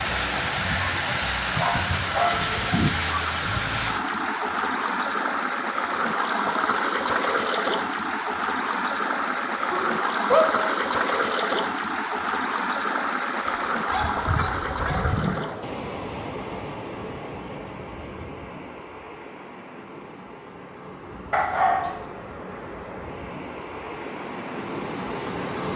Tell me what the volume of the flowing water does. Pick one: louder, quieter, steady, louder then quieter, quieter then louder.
quieter.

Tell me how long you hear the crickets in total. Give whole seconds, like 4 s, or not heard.
not heard.